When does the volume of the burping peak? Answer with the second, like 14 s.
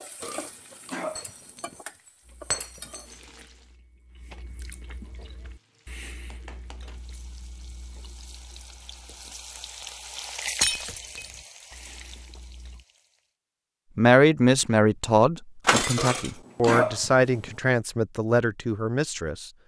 17 s.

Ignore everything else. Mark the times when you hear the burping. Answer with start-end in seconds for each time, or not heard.
0.2-1.8, 15.9-17.5.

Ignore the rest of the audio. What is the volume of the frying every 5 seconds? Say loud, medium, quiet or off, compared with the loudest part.
medium, medium, loud, off.